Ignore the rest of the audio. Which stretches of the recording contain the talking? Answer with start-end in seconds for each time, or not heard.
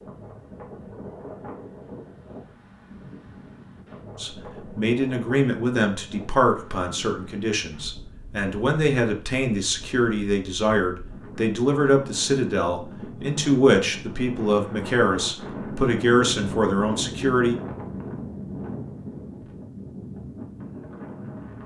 4.2-17.6.